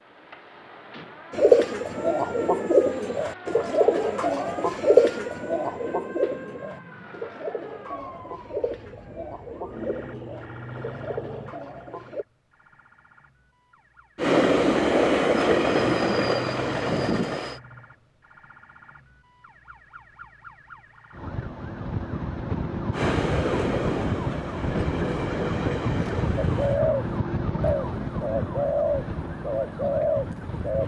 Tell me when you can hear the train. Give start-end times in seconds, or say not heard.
14.2-17.6, 22.9-26.8.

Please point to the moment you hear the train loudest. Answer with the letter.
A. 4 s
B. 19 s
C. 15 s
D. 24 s
C.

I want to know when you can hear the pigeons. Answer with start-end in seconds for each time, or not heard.
1.3-12.2, 26.4-30.8.